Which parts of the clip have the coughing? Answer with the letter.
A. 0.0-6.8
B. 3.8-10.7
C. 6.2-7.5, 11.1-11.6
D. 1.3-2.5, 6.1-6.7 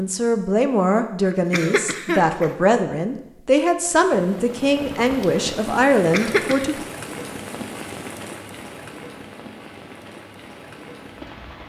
D.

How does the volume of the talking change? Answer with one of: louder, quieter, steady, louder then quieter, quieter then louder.
steady.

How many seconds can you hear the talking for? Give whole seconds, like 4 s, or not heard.
7 s.